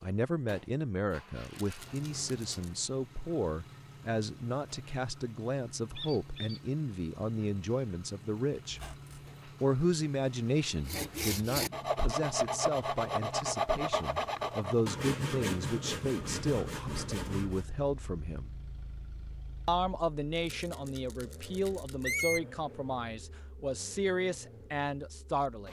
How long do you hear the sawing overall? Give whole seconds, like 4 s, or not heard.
7 s.